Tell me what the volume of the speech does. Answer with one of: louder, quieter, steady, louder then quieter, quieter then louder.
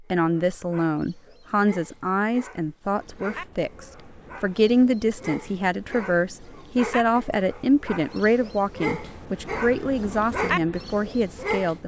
steady.